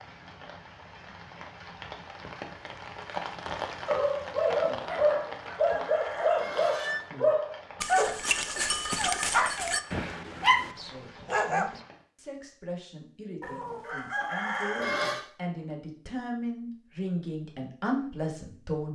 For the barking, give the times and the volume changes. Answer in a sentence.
The barking can be heard from 3.9 to 11.8 s, at a steady volume.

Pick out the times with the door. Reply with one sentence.
You can't hear the door here.